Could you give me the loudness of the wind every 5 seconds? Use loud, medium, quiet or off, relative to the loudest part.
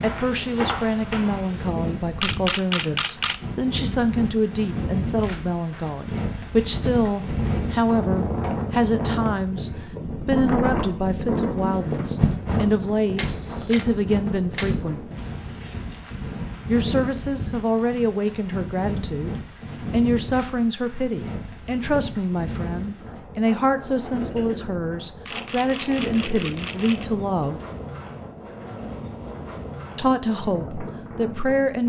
medium, loud, loud, medium, medium, medium, medium.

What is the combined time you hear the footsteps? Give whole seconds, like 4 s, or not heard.
2 s.